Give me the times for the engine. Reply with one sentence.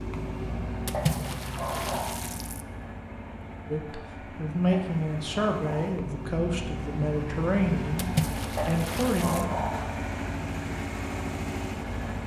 You can hear the engine from 0.0 to 12.2 s.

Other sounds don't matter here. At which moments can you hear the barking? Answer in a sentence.
You can hear the barking from 0.9 to 2.3 s, from 4.7 to 6.0 s and from 8.6 to 9.9 s.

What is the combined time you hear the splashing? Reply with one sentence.
You can hear the splashing for 3 seconds altogether.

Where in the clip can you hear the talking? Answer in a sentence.
The talking can be heard from 3.7 to 9.5 s.